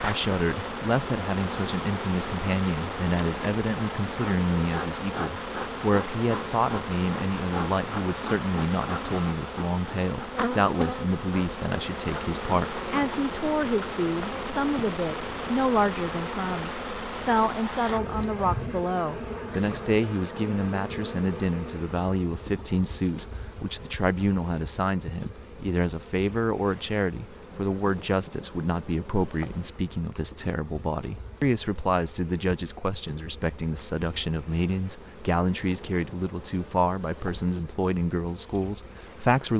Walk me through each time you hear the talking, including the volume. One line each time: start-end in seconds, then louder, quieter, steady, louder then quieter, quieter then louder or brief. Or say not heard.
0.0-39.5 steady.